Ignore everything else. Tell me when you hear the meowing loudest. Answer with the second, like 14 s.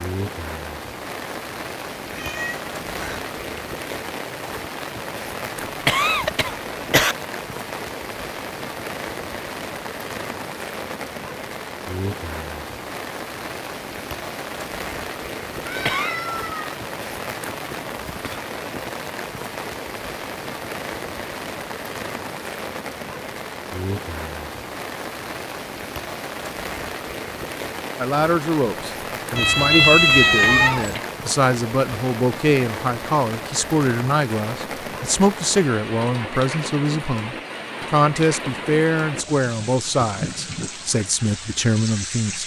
30 s.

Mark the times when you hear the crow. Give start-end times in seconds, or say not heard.
not heard.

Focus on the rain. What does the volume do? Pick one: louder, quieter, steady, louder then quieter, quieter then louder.
steady.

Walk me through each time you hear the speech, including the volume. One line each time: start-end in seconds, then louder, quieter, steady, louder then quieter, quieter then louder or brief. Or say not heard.
27.9-42.4 steady.